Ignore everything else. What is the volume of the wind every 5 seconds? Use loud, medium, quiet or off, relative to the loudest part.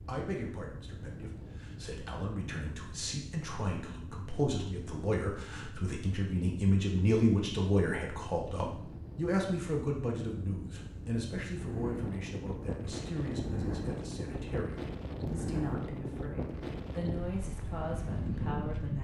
medium, medium, loud, loud.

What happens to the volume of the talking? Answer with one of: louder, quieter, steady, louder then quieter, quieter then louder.
louder then quieter.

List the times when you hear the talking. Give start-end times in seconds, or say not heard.
0.1-18.9.